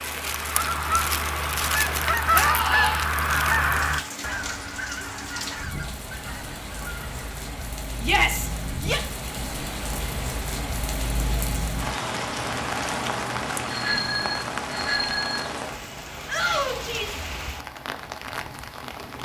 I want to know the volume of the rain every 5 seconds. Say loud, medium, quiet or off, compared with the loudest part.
medium, medium, loud, medium.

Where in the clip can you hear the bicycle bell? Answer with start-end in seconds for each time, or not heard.
13.7-15.4.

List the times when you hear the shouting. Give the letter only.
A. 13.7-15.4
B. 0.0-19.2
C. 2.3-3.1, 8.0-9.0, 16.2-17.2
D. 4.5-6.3
C.